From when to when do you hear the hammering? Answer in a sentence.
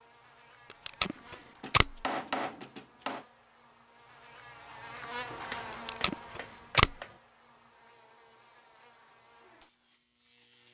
The hammering can be heard from 1.1 to 3.2 s and from 5.5 to 7.2 s.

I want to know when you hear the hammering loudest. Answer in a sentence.
The volume of the hammering peaks at 2 seconds.